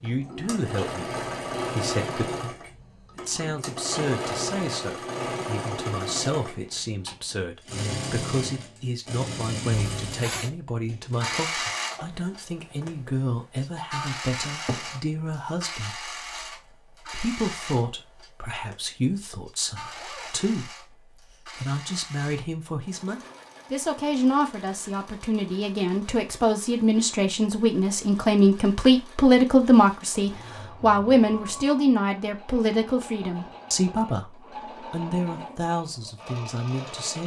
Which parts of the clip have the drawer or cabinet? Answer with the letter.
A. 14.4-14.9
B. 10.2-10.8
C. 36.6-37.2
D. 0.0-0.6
A.